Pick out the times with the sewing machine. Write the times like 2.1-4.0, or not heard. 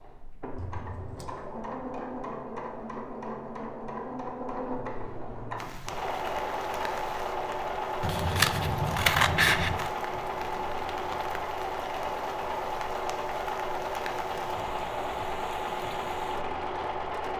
0.0-17.3.